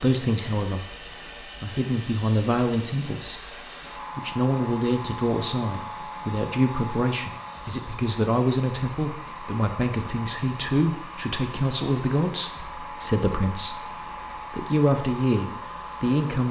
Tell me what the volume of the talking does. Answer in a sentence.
The loudness of the talking stays about the same.